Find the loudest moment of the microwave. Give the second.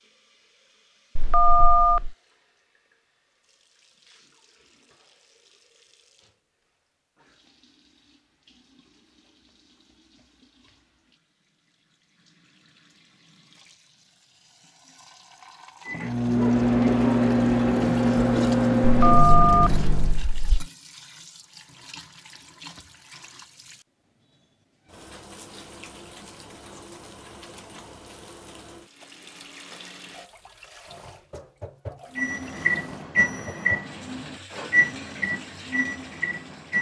17 s.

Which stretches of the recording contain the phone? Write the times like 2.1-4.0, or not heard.
1.1-2.1, 18.9-20.6.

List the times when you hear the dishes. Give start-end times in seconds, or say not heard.
not heard.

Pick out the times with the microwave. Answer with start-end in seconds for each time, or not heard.
15.8-20.2, 32.1-36.7.